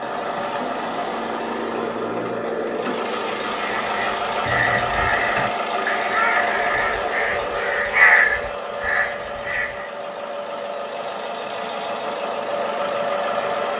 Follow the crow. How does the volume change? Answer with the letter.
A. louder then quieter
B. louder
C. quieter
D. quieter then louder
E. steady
A.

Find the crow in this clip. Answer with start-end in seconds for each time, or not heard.
3.5-9.8.